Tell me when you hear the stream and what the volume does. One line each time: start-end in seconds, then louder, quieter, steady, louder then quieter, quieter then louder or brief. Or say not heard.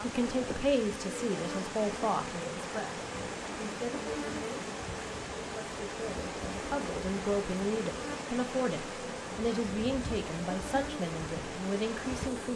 0.0-12.5 steady.